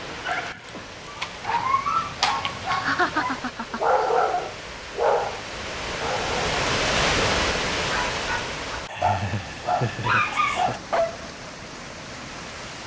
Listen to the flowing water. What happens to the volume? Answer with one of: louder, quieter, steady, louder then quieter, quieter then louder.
louder then quieter.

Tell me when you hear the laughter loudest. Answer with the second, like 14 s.
3 s.